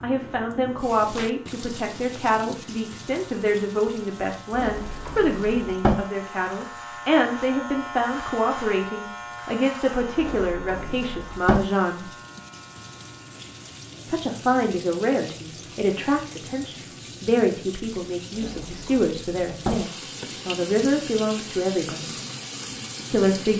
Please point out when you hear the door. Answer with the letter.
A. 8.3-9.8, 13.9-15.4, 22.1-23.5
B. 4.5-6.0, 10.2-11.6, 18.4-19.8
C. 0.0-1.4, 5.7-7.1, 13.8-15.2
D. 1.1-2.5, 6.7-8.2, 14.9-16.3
B.